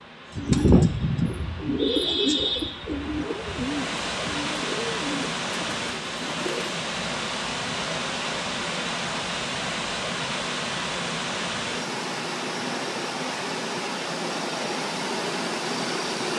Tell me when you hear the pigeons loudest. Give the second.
1 s.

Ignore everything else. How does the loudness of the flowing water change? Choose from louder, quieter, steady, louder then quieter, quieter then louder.
louder.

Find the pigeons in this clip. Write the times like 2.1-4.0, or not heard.
0.3-6.8.